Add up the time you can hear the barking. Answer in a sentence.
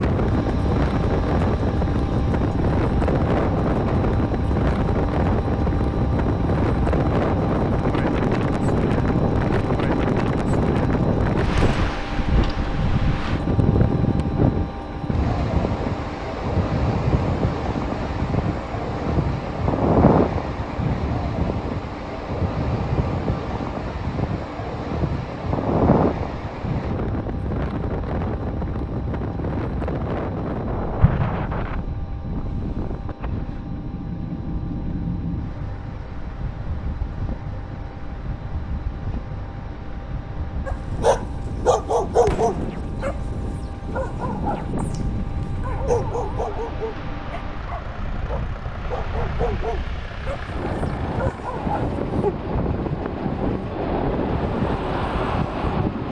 You can hear the barking for 10 seconds altogether.